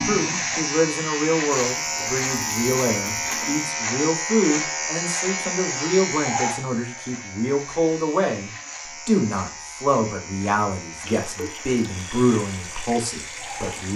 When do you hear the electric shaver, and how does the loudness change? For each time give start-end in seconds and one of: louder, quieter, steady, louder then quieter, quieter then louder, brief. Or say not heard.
0.0-13.9 quieter.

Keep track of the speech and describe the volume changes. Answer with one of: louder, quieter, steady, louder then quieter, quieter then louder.
steady.